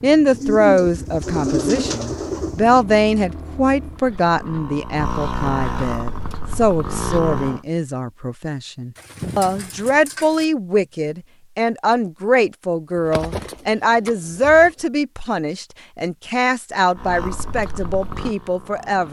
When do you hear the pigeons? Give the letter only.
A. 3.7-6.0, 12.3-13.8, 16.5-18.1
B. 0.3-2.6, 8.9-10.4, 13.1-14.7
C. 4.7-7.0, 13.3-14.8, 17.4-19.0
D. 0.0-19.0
B.